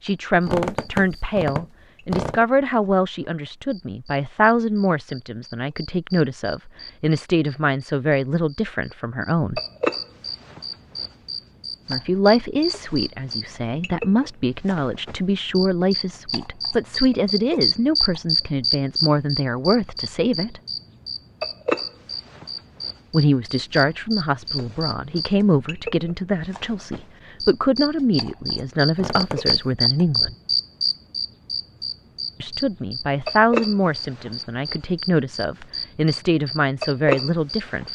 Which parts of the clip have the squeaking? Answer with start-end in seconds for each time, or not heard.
0.4-2.5, 28.9-29.8.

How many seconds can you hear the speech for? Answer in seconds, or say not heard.
31 s.